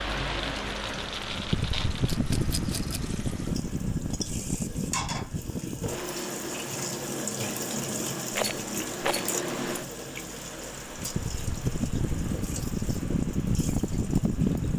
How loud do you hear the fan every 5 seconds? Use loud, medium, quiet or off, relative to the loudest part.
loud, medium, loud.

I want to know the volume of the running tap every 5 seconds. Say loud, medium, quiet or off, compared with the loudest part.
medium, loud, medium.